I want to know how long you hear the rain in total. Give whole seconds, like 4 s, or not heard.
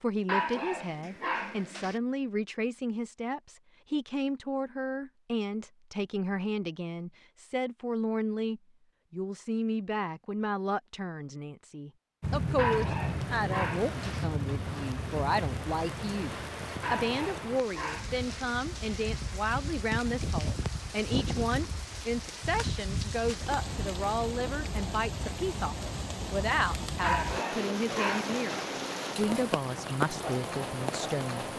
19 s.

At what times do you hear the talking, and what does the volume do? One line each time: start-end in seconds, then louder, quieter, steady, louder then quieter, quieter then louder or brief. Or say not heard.
0.0-31.5 steady.